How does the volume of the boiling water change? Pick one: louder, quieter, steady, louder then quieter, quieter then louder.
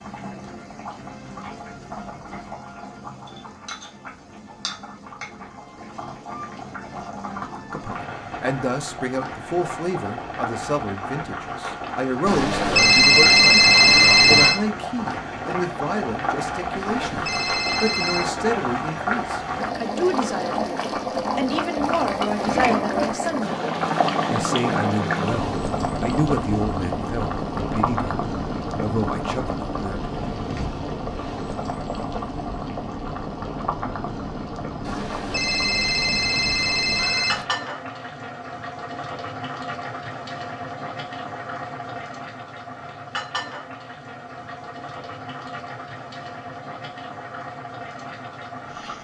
louder then quieter.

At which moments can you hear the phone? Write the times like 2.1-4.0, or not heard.
12.2-14.6, 16.8-18.3, 34.9-37.5.